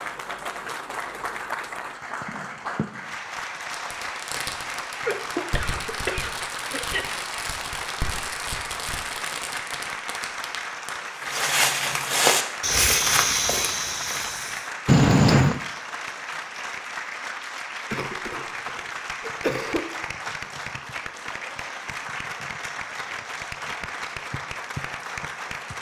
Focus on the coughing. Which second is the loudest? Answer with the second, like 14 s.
15 s.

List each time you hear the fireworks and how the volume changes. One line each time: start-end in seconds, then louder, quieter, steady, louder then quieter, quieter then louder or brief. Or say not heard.
3.7-10.9 steady.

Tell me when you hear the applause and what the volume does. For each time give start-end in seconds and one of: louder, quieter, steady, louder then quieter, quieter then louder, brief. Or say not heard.
0.0-25.7 steady.